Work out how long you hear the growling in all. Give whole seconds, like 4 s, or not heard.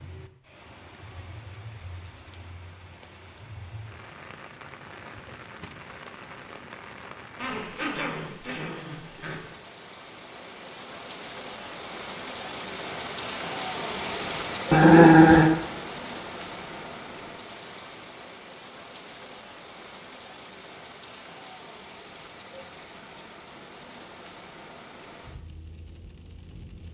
3 s.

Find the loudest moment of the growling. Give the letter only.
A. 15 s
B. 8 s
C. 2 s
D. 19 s
A.